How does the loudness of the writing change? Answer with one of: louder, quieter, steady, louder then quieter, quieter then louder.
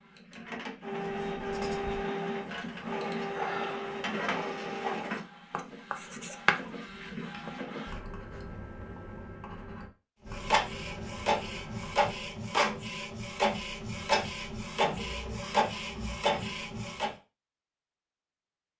louder then quieter.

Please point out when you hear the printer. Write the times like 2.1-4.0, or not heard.
0.0-8.0, 10.2-17.1.